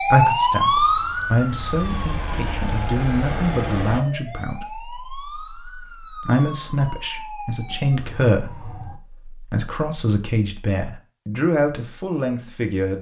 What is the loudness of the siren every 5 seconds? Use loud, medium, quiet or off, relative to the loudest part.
loud, quiet, off.